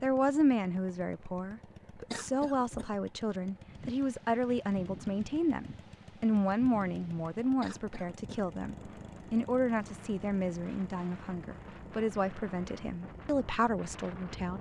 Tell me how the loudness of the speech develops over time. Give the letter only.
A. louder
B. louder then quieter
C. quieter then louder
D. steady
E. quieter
D.